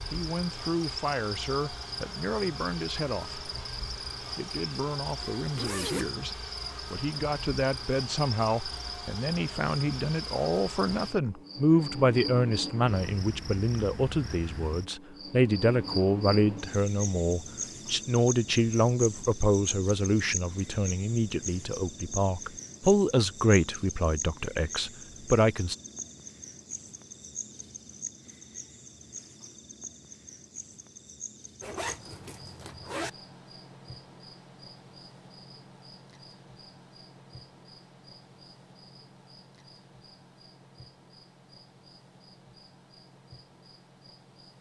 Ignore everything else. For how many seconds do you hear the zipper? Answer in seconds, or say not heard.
2 s.